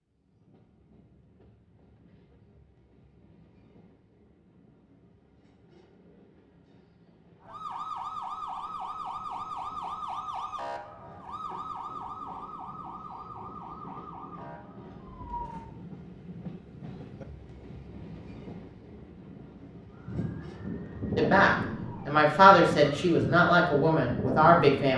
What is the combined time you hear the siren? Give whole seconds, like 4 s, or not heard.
13 s.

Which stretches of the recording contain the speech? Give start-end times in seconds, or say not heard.
21.1-24.9.